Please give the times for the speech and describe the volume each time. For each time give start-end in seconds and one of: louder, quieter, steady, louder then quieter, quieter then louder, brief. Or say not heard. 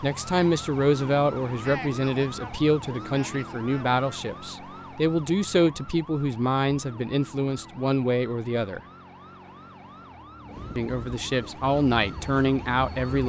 0.0-8.8 steady
10.8-13.2 brief.